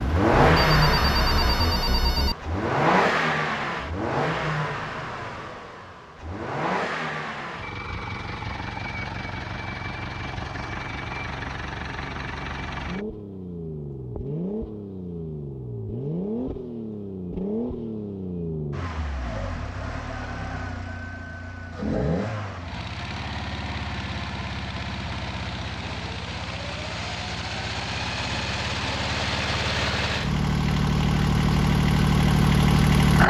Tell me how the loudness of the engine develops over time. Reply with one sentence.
The volume of the engine goes down, then up.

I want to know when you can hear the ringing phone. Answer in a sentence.
You can hear the ringing phone from 0.5 to 2.4 s.